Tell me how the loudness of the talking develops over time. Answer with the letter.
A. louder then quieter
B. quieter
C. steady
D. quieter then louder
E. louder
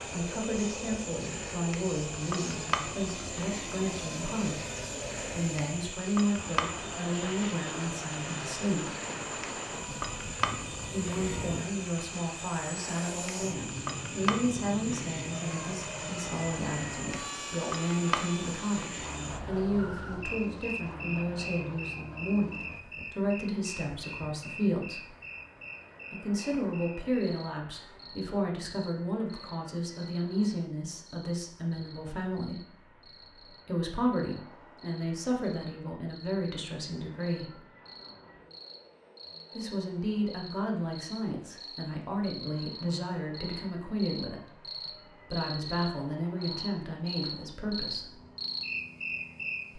C.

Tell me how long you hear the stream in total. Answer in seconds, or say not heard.
not heard.